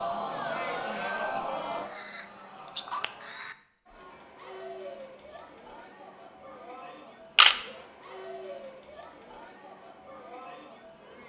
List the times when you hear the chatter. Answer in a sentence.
The chatter can be heard from 0.0 to 11.2 s.